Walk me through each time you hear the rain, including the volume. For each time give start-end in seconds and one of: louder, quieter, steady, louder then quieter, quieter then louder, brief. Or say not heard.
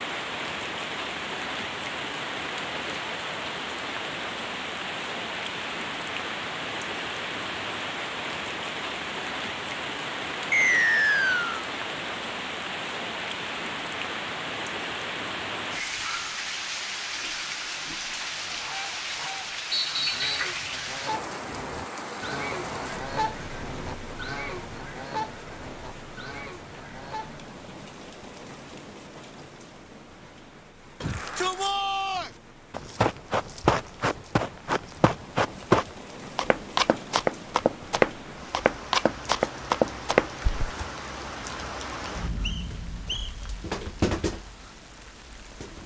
0.0-45.8 quieter then louder.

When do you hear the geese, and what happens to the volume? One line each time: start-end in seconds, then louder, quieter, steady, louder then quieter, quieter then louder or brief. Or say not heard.
18.4-27.4 louder then quieter.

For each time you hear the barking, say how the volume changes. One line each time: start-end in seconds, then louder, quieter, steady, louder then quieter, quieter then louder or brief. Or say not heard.
not heard.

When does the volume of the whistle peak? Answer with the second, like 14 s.
11 s.